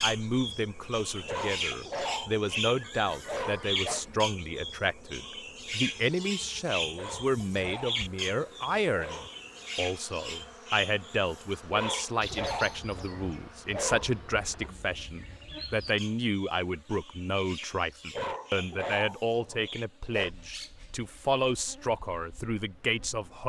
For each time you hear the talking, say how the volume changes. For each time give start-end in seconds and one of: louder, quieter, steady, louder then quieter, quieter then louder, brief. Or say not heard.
0.0-23.4 steady.